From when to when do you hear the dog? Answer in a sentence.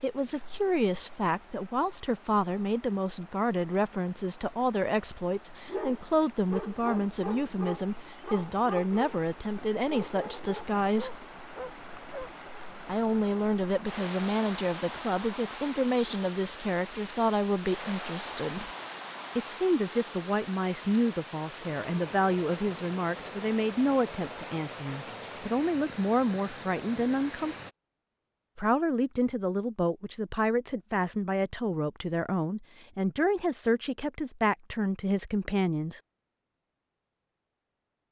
You can hear the dog from 5.7 to 12.3 s.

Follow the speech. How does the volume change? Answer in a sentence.
The volume of the speech stays about the same.